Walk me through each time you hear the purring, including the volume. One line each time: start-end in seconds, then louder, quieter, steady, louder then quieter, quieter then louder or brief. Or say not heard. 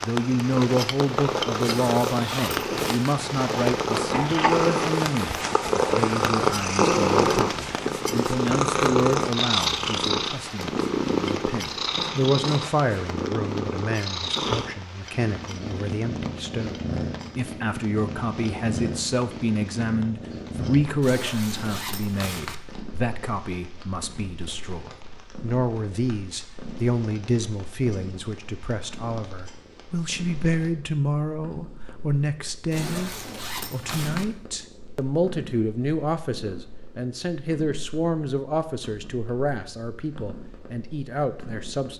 0.1-41.9 quieter.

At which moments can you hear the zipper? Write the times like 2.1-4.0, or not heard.
1.6-3.1, 21.0-22.6, 32.7-34.2.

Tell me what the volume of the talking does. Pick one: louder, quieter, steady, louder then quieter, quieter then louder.
steady.